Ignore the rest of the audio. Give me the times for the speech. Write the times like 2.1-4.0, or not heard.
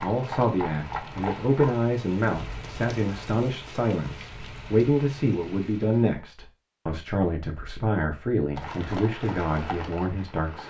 0.0-10.6.